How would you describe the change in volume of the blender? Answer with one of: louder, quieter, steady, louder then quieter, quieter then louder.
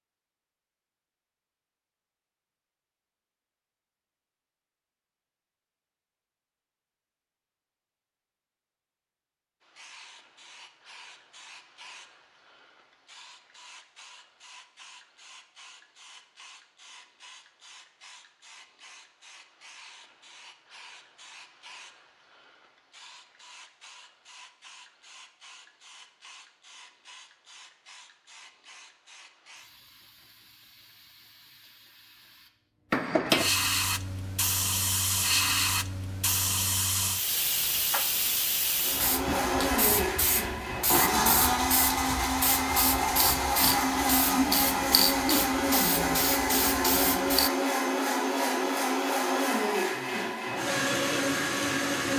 steady.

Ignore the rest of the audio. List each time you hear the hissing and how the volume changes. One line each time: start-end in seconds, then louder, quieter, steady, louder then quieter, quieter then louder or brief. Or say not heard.
9.6-47.5 louder.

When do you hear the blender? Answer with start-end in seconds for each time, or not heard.
38.8-52.1.